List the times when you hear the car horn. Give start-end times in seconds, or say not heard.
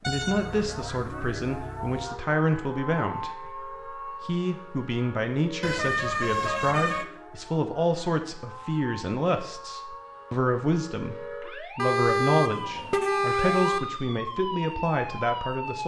0.0-2.0, 5.6-7.0, 11.8-13.8.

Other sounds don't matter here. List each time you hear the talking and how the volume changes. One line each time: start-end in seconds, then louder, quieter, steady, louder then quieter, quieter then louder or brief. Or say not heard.
0.1-15.8 steady.